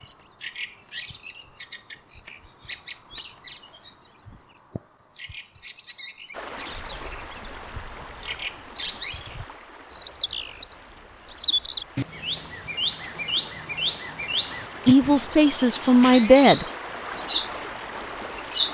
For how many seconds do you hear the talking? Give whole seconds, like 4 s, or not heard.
2 s.